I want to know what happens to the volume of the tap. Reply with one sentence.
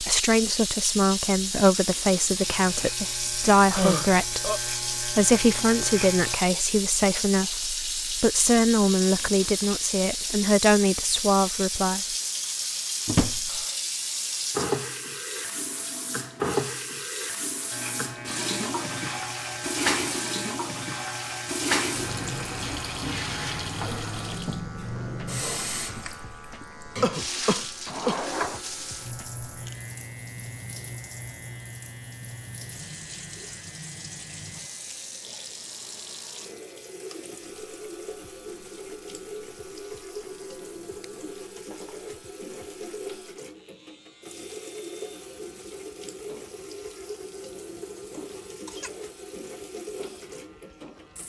The volume of the tap goes down.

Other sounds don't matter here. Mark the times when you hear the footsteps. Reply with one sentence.
The footsteps can't be heard in this clip.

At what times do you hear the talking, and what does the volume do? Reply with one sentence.
You can hear the talking from 0.0 to 12.0 s, at a steady volume.